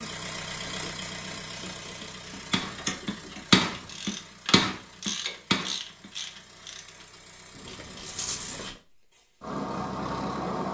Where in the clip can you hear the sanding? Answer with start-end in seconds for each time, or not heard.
not heard.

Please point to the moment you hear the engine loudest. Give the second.
10 s.